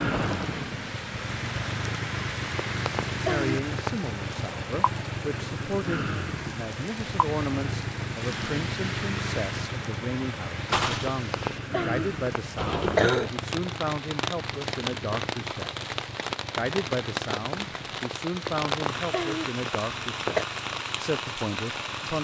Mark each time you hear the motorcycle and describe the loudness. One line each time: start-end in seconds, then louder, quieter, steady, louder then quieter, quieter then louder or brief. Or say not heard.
0.0-22.1 quieter.